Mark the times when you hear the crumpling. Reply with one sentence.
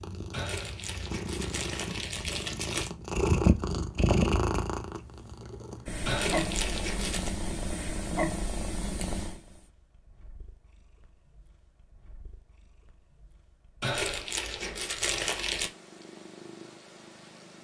The crumpling can be heard from 0.3 to 2.9 s, from 6.0 to 7.3 s and from 13.8 to 15.7 s.